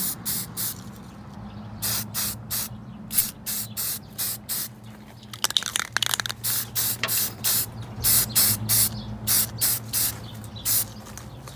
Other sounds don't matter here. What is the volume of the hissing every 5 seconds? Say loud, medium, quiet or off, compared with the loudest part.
medium, loud, medium.